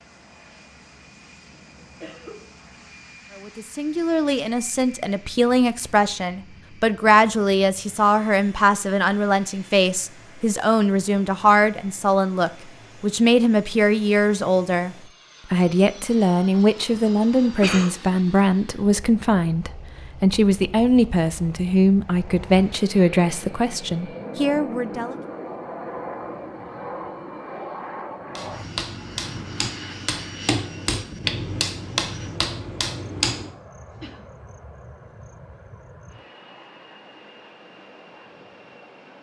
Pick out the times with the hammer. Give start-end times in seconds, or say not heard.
28.4-33.5.